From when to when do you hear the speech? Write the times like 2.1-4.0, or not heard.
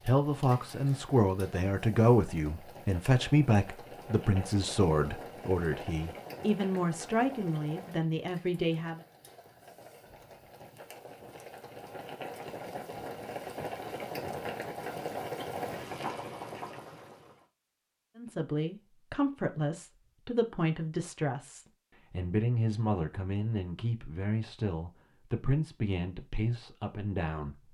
0.0-9.0, 18.1-27.6.